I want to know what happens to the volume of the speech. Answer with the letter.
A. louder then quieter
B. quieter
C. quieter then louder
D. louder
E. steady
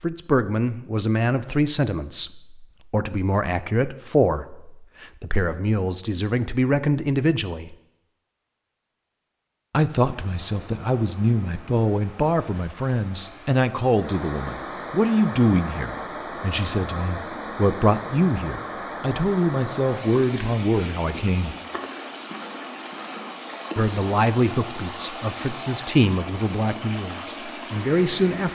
E.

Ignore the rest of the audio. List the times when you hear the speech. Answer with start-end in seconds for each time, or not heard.
0.0-7.8, 9.7-21.6, 23.8-28.5.